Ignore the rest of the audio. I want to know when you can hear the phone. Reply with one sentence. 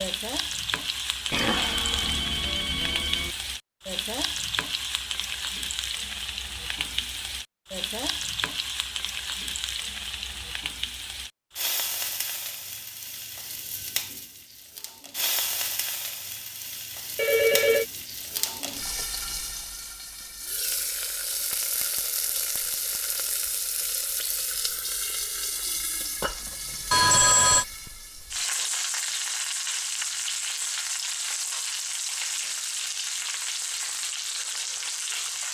The phone can be heard from 1.3 to 3.3 s, from 17.1 to 17.9 s and from 26.9 to 27.6 s.